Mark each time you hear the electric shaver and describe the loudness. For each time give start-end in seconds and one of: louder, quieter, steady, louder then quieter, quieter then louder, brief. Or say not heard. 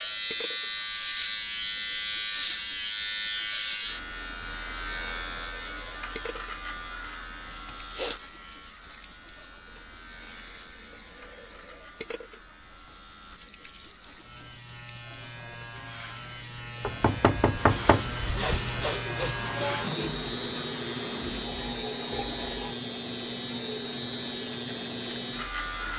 0.0-25.9 quieter then louder.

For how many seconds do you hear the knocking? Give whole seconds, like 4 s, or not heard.
2 s.